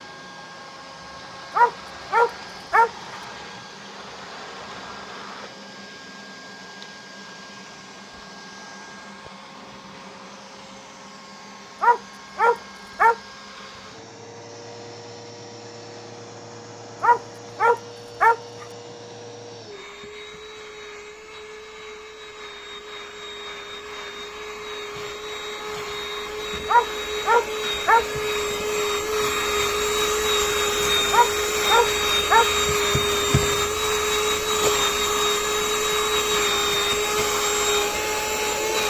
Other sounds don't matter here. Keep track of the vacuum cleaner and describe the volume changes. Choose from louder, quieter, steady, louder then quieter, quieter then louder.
louder.